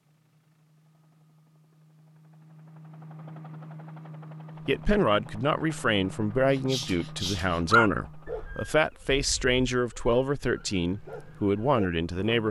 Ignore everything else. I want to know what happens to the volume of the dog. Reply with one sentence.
The loudness of the dog goes down, then up.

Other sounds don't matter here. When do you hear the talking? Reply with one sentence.
You can hear the talking from 4.7 to 12.4 s.